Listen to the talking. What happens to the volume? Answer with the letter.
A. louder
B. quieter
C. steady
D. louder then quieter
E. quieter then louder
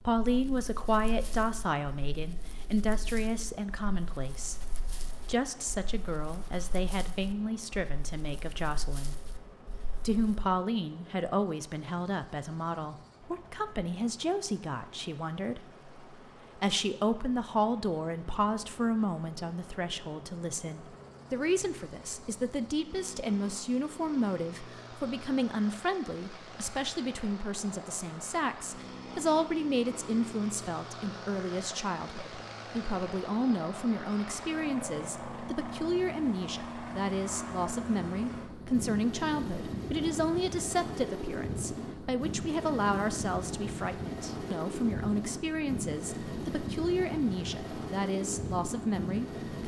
C.